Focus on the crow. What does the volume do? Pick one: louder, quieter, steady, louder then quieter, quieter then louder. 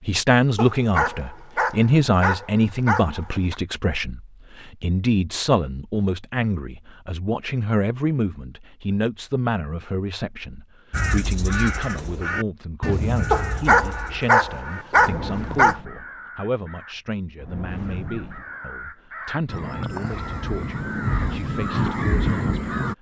quieter then louder.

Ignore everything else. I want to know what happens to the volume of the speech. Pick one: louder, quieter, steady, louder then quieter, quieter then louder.
quieter.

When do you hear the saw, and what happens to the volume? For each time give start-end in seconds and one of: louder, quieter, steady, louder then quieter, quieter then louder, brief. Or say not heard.
not heard.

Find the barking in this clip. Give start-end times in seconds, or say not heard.
0.6-3.5, 13.3-15.8.